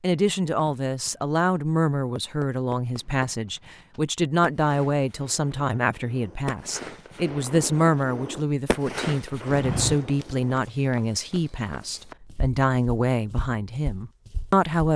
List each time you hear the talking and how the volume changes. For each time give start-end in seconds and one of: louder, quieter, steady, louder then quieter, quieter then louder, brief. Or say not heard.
0.0-14.9 steady.